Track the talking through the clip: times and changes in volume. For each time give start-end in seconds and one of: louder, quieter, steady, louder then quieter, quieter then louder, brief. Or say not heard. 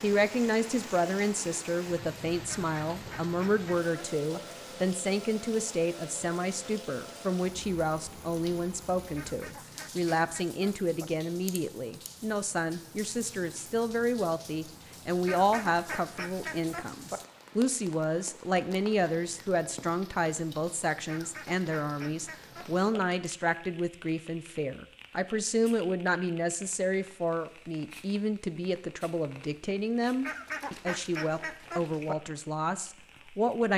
0.0-33.7 steady.